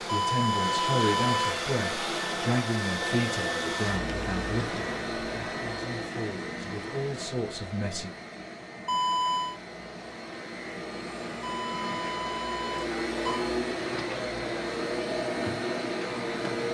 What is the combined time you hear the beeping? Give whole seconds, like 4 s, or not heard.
4 s.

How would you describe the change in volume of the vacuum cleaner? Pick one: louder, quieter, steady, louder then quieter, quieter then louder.
quieter then louder.